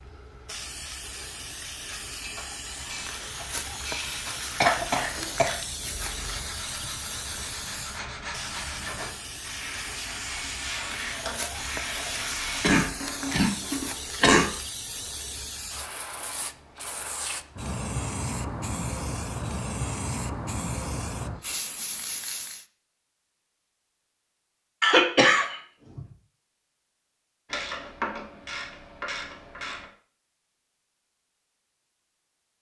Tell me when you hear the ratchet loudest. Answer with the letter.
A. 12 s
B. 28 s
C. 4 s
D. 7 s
B.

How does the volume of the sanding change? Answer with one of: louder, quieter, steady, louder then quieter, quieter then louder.
louder.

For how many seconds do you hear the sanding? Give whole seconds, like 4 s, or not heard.
10 s.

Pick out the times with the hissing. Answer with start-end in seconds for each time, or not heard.
0.0-22.6.